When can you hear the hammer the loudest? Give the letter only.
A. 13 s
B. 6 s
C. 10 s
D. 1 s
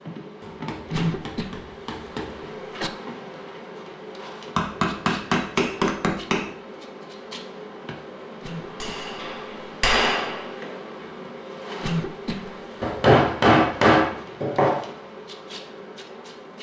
A.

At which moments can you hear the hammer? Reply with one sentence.
You can hear the hammer from 0.4 to 2.4 s, from 4.5 to 6.5 s, from 8.8 to 10.8 s and from 12.8 to 14.8 s.